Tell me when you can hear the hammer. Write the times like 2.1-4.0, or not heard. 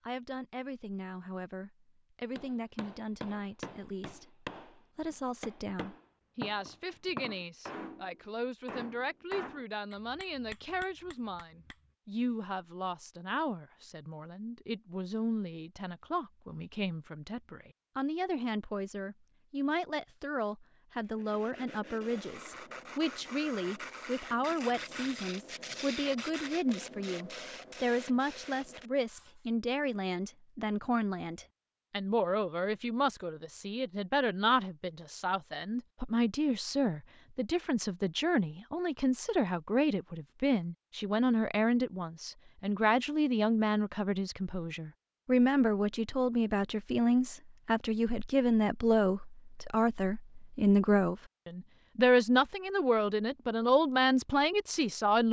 2.4-11.8.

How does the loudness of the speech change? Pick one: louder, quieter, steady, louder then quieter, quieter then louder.
louder.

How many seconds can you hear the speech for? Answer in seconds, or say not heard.
55 s.